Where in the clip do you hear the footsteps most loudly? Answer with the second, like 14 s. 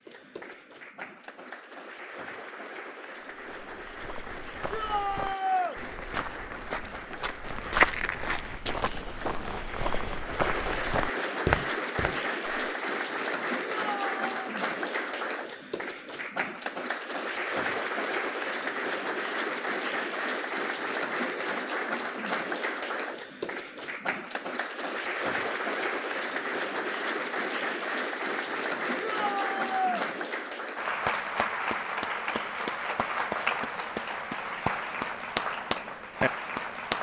8 s.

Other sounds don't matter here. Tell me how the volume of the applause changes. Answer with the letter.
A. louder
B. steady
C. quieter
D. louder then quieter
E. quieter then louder
A.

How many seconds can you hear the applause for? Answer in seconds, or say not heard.
37 s.